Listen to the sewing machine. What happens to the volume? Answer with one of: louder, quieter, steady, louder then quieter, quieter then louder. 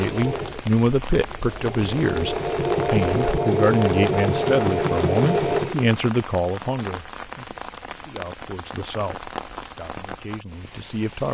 louder.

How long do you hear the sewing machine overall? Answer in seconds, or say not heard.
6 s.